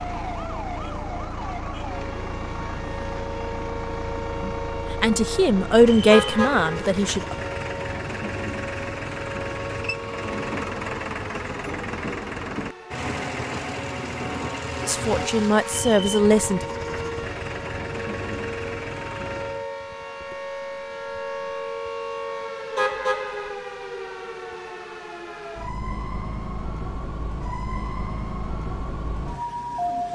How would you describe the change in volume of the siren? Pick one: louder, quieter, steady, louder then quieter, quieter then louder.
steady.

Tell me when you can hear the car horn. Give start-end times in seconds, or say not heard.
6.1-6.9, 22.8-23.6.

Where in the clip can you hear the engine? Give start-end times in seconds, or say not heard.
0.0-19.7.